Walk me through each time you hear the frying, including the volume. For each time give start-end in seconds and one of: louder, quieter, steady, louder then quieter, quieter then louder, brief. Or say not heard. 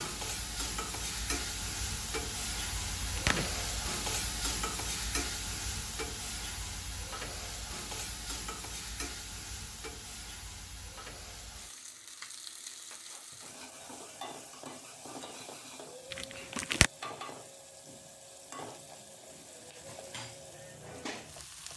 0.0-21.7 quieter.